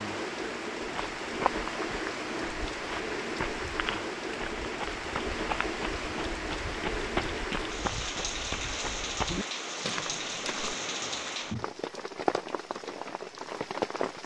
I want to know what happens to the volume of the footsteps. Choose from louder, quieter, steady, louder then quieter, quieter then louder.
steady.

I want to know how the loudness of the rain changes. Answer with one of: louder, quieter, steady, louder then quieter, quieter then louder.
steady.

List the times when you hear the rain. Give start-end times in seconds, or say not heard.
0.0-14.2.